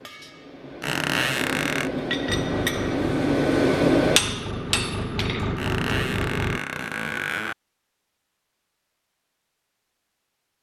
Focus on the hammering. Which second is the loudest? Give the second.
4 s.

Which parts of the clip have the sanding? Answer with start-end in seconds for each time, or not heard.
not heard.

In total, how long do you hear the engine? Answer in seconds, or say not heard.
4 s.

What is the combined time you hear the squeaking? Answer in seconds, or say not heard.
3 s.